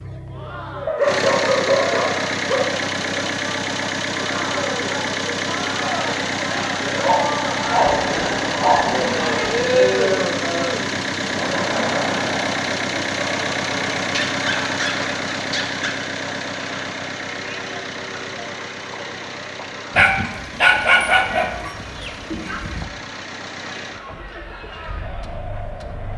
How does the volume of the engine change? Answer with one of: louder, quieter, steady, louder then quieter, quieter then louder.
quieter.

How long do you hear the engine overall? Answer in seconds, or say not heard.
26 s.